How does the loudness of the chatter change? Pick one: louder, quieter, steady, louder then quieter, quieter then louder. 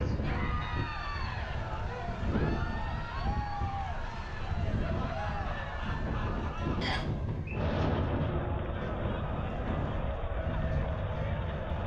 steady.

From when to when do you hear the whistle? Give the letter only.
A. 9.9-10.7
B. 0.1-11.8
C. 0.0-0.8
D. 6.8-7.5
D.